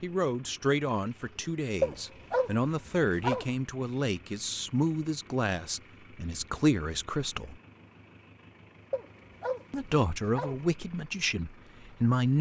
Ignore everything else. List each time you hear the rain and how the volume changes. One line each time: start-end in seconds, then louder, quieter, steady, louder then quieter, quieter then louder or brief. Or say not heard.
not heard.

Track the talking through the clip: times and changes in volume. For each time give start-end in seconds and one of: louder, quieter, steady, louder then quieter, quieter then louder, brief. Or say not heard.
0.0-7.5 steady
9.7-12.3 brief.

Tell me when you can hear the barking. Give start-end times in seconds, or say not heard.
1.8-3.5, 8.9-10.6.